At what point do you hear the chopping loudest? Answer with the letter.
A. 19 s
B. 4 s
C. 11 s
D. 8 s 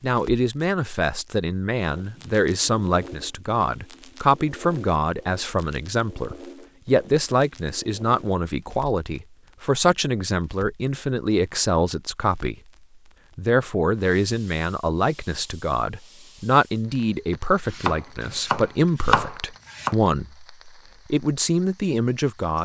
A.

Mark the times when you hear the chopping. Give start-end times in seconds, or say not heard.
17.6-19.9.